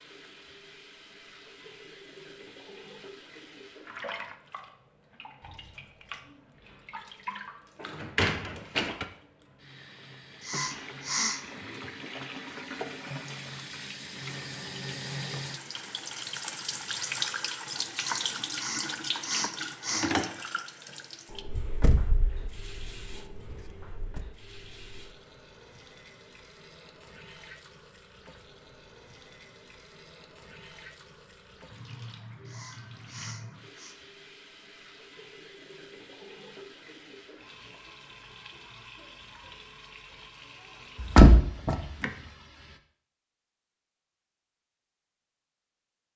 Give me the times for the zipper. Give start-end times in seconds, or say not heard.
not heard.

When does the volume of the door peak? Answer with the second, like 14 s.
41 s.